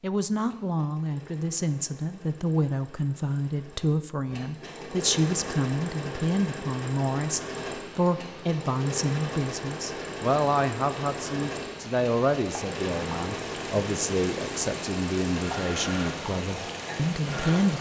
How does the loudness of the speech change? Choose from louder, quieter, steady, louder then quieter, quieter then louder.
steady.